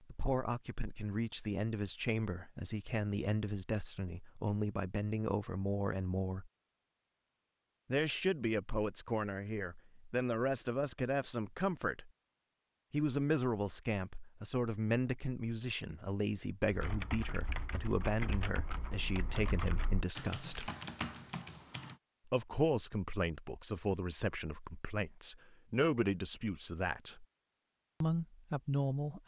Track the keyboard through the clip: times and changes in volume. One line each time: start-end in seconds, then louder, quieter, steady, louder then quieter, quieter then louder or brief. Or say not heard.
16.7-21.9 louder.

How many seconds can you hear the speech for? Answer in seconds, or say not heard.
25 s.